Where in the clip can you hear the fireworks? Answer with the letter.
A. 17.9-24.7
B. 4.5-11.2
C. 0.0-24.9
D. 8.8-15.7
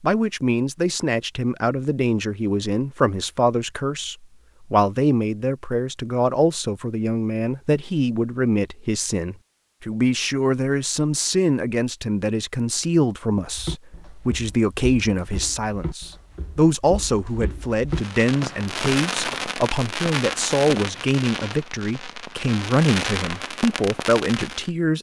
A.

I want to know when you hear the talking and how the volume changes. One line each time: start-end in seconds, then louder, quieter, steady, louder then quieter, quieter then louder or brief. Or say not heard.
0.0-24.9 steady.